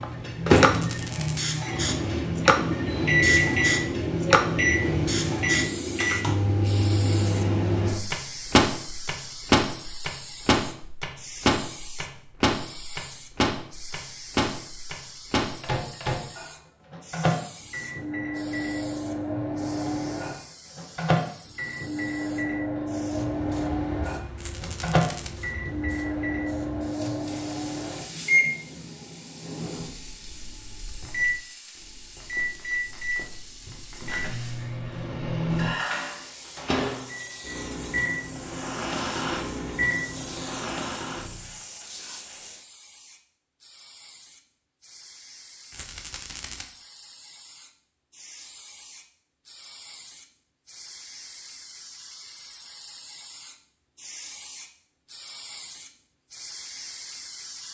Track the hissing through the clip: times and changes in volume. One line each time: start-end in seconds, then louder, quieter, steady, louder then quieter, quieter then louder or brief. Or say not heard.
0.0-57.6 quieter.